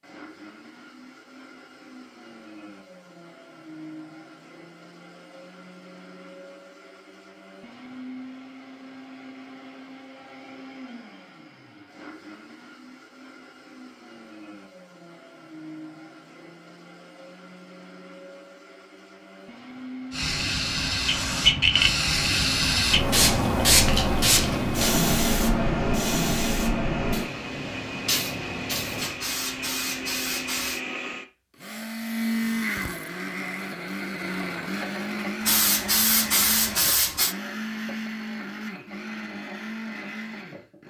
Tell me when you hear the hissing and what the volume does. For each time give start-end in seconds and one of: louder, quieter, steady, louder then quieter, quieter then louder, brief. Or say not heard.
20.1-30.8 quieter
35.5-37.4 brief.